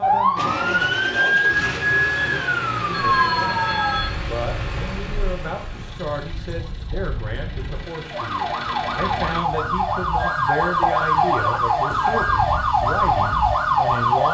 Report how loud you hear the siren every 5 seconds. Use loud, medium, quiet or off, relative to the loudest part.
loud, medium, loud.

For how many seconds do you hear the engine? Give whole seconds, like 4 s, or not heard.
9 s.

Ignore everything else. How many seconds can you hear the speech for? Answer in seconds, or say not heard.
14 s.